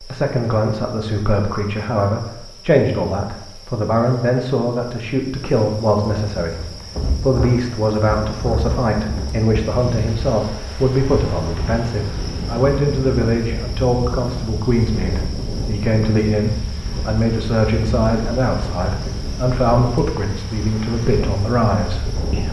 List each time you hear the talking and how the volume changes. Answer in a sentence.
You can hear the talking from 0.0 to 22.4 s, at a steady volume.